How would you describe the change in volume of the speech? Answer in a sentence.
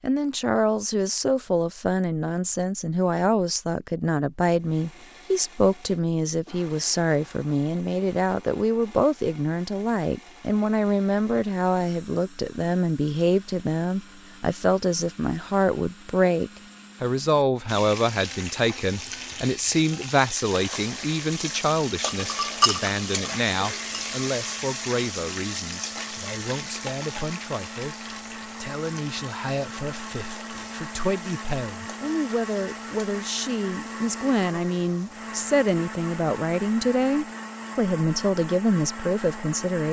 The volume of the speech goes down, then up.